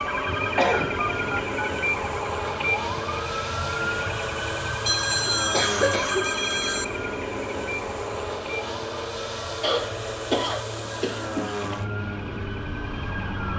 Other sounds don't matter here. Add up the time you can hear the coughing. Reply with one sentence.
You can hear the coughing for 4 seconds altogether.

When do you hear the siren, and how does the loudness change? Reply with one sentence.
You can hear the siren from 0.0 to 13.5 s, getting quieter.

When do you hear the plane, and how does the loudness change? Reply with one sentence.
You can hear the plane from 0.0 to 13.5 s, at a steady volume.